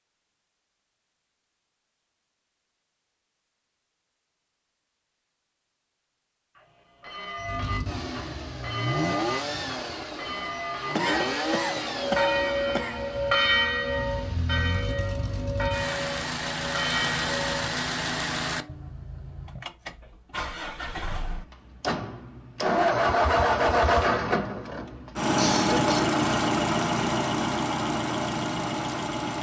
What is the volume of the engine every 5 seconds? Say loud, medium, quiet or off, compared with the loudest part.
off, medium, medium, medium, loud, loud.